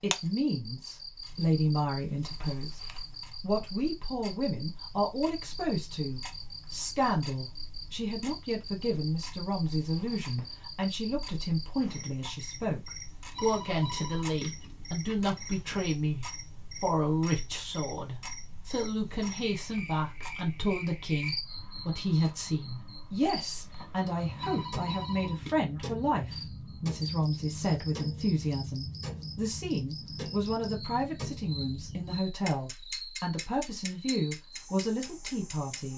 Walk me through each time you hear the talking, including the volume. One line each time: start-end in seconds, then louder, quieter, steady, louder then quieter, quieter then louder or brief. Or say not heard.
0.0-2.8 brief
3.4-35.9 steady.